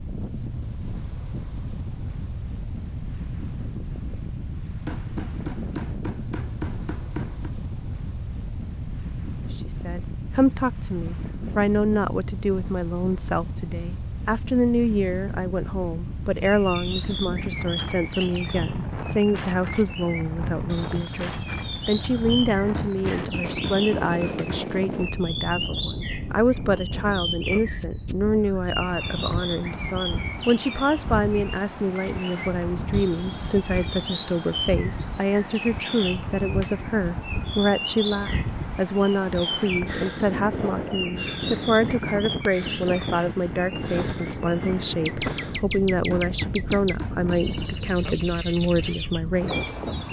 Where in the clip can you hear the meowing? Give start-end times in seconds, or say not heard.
not heard.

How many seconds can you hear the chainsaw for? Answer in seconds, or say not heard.
not heard.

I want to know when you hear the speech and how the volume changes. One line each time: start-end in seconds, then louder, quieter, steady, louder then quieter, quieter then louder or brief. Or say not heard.
9.5-49.8 steady.